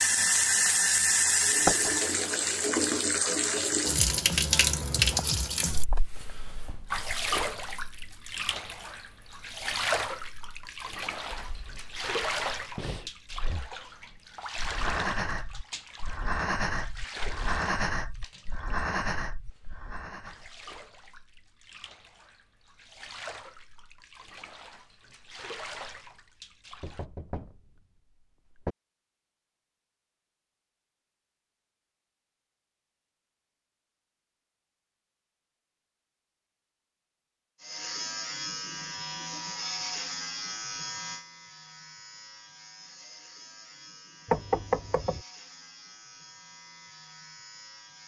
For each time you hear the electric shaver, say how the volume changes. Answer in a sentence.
You can hear the electric shaver from 37.6 to 48.0 s, getting quieter.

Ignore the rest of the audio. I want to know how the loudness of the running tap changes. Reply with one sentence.
The volume of the running tap goes down.